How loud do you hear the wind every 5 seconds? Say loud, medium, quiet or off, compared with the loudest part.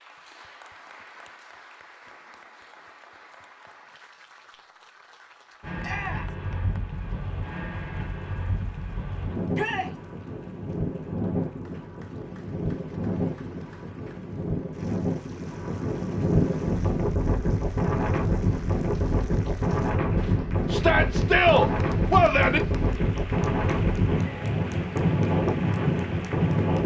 off, medium, medium, loud, loud, loud.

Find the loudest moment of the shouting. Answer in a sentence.
The volume of the shouting peaks at 21 seconds.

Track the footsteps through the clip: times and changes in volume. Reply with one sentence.
The footsteps can't be heard in this clip.